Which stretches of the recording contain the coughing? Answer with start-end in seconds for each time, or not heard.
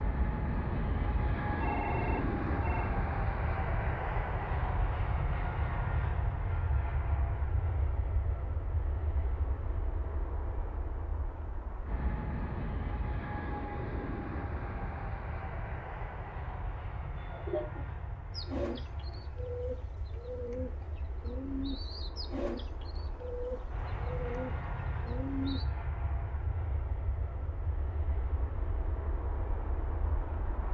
not heard.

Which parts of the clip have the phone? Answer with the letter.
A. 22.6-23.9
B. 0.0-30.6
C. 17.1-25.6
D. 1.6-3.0
D.